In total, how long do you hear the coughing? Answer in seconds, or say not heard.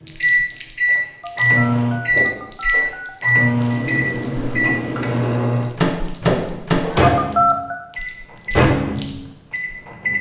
2 s.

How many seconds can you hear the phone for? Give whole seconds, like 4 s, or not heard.
3 s.